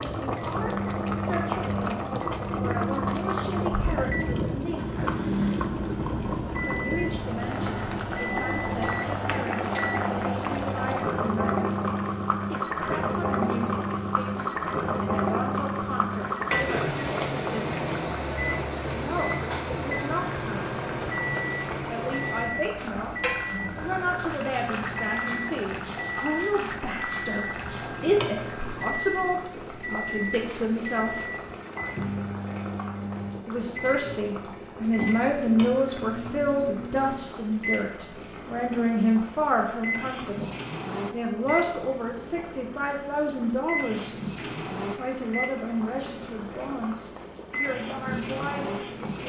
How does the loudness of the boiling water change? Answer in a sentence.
The volume of the boiling water goes down.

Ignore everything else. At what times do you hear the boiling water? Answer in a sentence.
The boiling water can be heard from 0.0 to 49.2 s.